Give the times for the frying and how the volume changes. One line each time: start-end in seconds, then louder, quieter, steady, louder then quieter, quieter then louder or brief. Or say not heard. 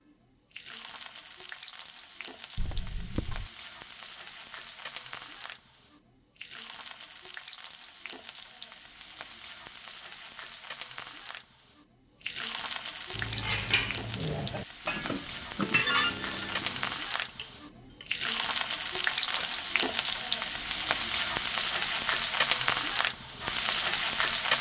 0.1-24.5 louder.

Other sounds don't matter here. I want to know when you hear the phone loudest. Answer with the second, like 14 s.
16 s.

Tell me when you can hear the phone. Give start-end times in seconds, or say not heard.
2.5-3.5, 15.8-17.0.